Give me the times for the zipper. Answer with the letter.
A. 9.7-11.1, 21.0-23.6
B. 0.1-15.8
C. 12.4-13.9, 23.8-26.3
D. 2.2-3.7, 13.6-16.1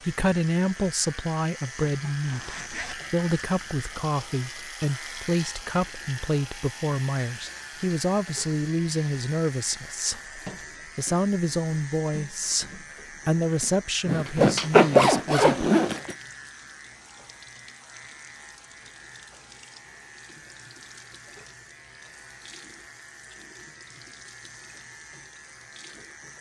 D.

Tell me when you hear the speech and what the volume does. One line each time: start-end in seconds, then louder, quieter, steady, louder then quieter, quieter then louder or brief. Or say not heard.
0.1-15.8 steady.